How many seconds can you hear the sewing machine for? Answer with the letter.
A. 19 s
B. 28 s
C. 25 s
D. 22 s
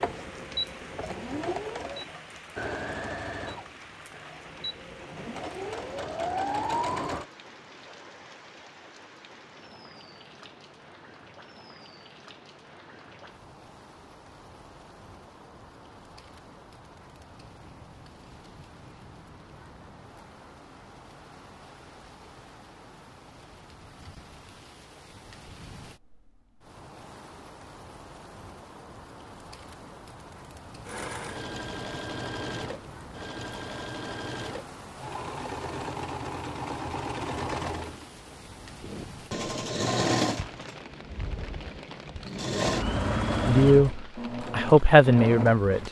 D.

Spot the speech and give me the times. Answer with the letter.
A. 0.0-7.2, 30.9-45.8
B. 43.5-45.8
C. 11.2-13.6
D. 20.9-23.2
B.